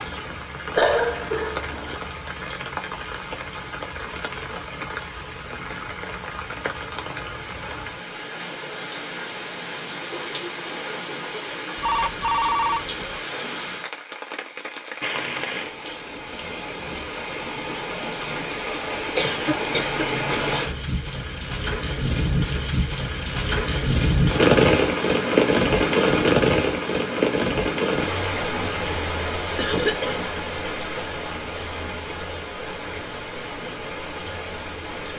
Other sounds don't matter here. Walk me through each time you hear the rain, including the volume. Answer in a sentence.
The rain can be heard from 0.0 to 35.1 s, getting louder then quieter.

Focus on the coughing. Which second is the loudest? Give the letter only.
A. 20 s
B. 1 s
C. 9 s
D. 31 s
B.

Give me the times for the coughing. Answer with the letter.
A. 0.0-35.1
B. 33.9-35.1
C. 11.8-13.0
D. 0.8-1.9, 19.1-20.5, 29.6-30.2
D.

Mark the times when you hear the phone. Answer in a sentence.
You can hear the phone from 11.8 to 13.0 s.